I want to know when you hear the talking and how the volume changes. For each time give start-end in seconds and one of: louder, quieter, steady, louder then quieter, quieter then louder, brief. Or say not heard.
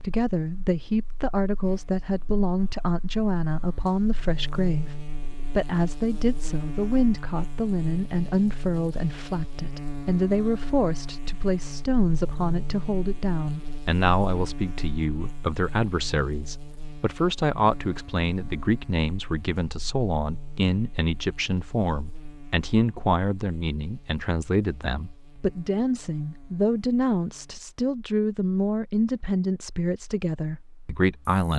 0.0-31.5 steady.